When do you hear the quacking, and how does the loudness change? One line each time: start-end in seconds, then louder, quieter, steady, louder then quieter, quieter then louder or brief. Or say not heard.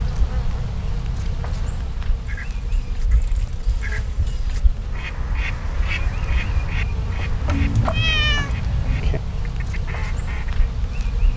2.1-10.7 louder then quieter.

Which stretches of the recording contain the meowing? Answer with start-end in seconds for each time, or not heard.
7.5-8.6.